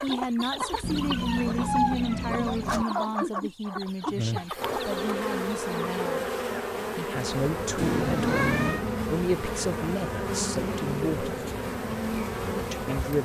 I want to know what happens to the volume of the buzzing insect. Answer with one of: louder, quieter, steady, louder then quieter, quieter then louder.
steady.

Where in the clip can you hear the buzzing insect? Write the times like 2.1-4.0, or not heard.
4.5-13.2.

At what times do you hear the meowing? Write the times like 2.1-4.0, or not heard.
0.8-2.9, 7.8-8.8.